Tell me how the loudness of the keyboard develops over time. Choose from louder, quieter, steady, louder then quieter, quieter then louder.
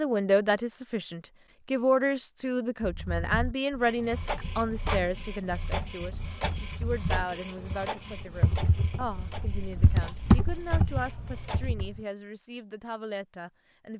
louder.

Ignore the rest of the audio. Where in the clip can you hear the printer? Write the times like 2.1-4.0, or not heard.
3.8-11.7.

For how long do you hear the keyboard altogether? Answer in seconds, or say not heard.
9 s.